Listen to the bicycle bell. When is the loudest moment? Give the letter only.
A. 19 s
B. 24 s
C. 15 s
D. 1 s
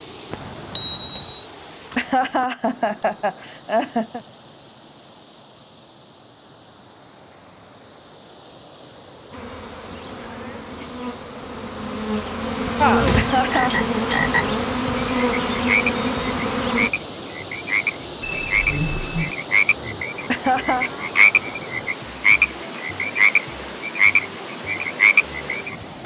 D.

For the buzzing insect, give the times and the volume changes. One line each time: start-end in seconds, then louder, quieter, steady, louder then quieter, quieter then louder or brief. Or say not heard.
9.3-16.9 louder.